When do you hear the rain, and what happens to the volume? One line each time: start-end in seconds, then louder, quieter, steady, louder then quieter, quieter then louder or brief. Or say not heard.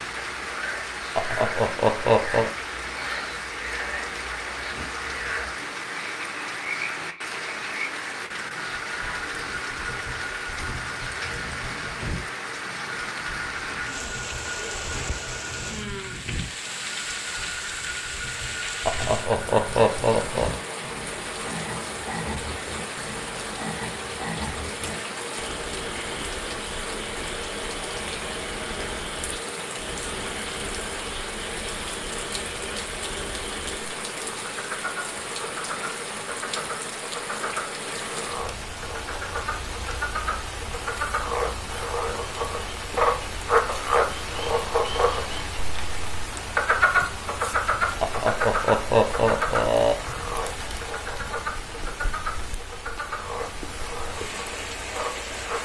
0.0-55.5 steady.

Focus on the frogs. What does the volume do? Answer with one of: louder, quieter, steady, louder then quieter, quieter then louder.
louder.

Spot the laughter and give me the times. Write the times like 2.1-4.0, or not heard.
1.1-2.5, 18.9-20.5, 48.0-50.0.